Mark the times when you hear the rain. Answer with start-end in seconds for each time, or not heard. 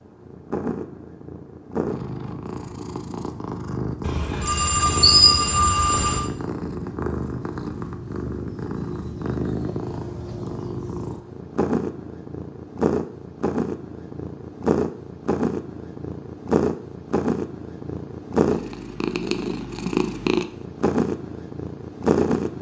not heard.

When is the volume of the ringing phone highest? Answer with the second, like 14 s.
5 s.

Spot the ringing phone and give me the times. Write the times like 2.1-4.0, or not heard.
4.0-6.2.